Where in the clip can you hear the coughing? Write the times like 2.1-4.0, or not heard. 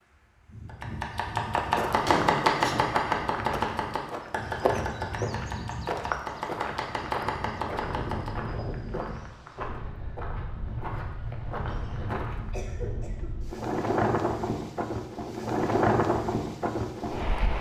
2.0-2.9, 12.5-13.3.